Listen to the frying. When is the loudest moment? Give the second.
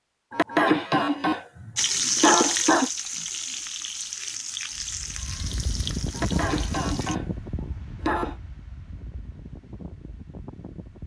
2 s.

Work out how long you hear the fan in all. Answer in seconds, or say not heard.
6 s.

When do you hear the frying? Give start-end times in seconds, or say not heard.
1.8-7.2.